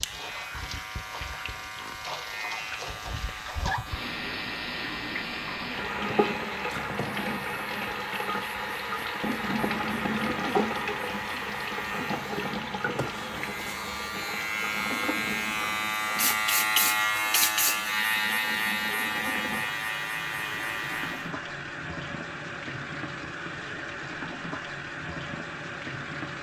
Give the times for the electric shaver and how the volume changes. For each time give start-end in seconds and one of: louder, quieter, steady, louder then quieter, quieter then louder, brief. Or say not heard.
0.0-21.3 louder.